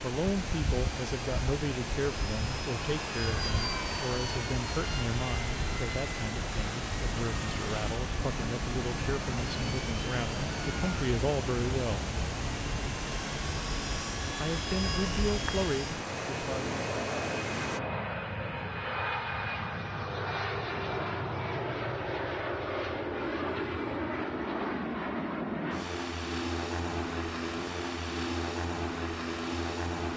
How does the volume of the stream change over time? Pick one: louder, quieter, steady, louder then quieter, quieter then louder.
steady.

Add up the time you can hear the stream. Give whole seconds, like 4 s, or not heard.
18 s.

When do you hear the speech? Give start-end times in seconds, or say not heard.
0.0-12.2, 14.4-16.8.